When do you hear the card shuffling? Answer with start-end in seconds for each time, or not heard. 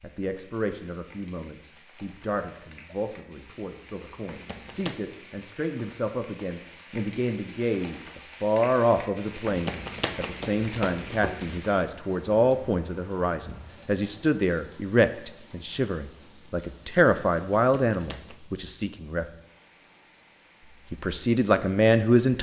4.2-5.0, 9.4-11.6, 17.6-18.4.